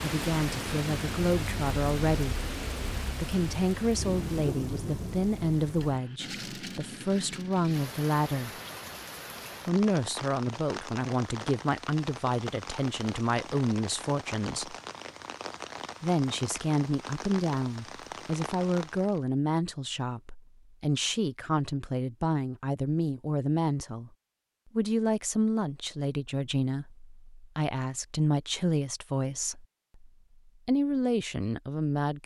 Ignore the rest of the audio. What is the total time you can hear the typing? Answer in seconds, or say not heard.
not heard.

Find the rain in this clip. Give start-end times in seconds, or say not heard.
0.0-19.2.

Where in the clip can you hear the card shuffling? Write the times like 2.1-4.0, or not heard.
not heard.